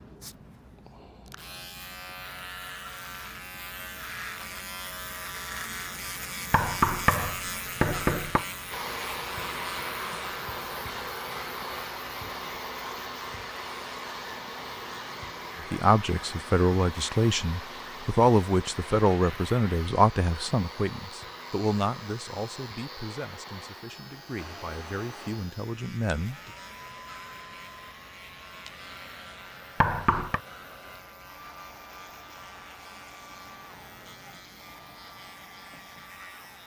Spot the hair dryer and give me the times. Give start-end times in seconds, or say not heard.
8.7-36.6.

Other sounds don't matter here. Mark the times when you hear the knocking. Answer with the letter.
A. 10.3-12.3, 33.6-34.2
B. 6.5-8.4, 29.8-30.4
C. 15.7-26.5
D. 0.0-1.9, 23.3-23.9
B.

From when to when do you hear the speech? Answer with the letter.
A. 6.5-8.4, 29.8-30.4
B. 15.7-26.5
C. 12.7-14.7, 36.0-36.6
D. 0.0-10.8
B.